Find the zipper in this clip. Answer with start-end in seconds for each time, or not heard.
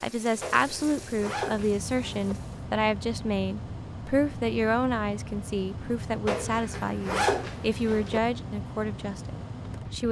0.4-2.4, 6.2-8.2.